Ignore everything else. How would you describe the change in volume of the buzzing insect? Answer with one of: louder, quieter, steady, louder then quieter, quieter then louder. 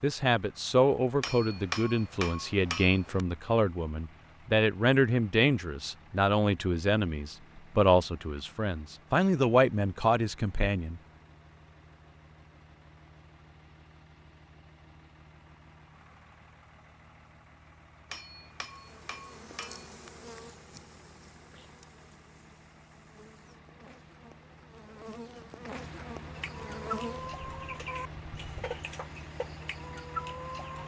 quieter then louder.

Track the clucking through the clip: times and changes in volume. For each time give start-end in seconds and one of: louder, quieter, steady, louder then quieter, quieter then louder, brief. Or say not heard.
26.4-30.8 quieter then louder.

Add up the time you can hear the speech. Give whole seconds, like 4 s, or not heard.
11 s.